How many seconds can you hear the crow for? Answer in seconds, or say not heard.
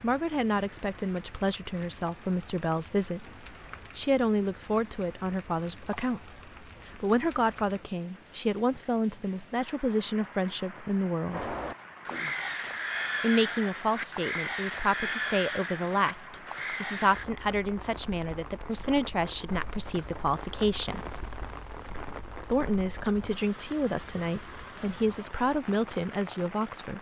6 s.